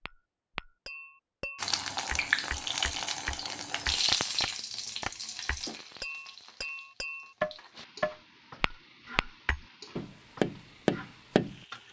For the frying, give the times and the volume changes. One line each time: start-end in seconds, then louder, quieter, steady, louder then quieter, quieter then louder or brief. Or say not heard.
1.6-11.8 quieter.